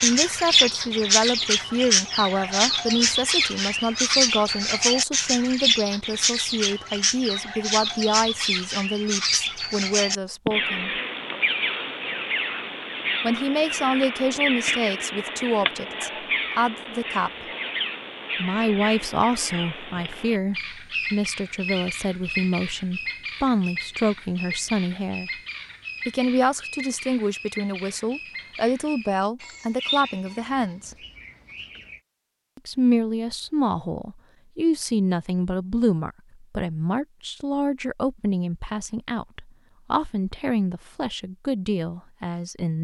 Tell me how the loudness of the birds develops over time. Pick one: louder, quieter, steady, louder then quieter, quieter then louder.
quieter.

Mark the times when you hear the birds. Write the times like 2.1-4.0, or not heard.
0.0-32.0.